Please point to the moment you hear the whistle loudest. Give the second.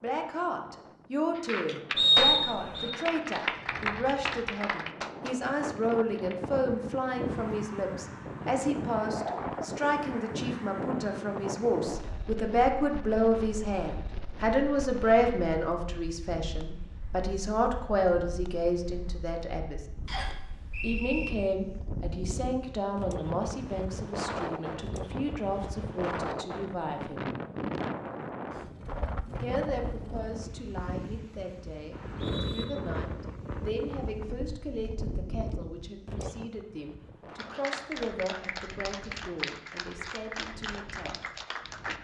2 s.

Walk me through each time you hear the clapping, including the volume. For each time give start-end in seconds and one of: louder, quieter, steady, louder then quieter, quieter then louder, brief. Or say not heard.
1.4-6.5 quieter
37.4-42.0 steady.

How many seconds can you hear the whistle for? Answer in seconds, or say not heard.
3 s.